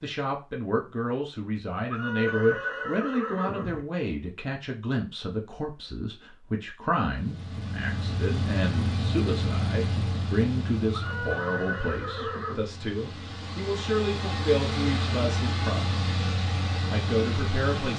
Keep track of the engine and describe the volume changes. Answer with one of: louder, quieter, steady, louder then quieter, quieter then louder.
quieter then louder.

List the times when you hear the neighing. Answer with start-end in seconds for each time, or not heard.
1.9-3.9, 10.9-12.7.